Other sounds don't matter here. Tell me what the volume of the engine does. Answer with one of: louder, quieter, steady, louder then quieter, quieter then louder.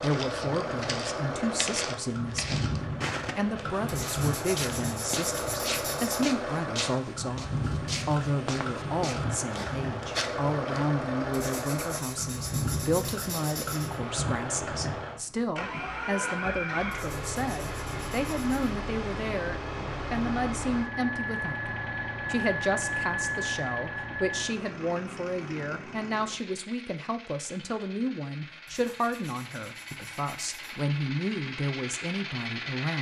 quieter.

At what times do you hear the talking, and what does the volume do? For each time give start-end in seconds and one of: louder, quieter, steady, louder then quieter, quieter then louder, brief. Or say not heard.
0.0-32.9 steady.